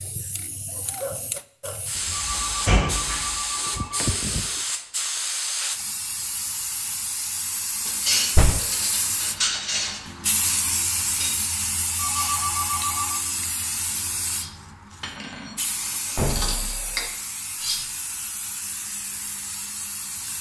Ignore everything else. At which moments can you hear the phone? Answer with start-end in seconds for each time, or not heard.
2.1-4.1, 11.9-13.2.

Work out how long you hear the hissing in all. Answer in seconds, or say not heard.
20 s.